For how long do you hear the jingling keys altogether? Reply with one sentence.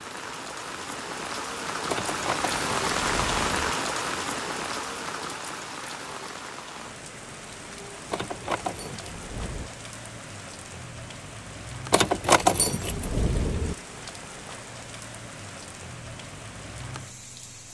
The jingling keys can be heard for 5 seconds in total.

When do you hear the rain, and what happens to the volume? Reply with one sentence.
You can hear the rain from 0.0 to 17.7 s, getting quieter.